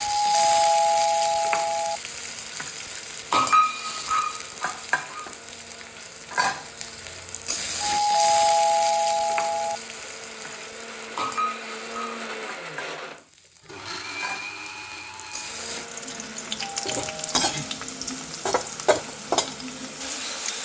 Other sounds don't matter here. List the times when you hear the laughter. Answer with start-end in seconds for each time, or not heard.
not heard.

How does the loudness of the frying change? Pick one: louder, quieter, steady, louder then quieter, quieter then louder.
quieter then louder.